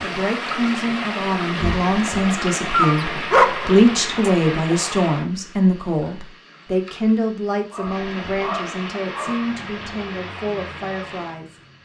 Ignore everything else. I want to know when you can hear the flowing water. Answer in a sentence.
You can hear the flowing water from 0.0 to 11.7 s.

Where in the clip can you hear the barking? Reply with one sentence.
You can hear the barking from 2.7 to 4.3 s and from 7.7 to 9.5 s.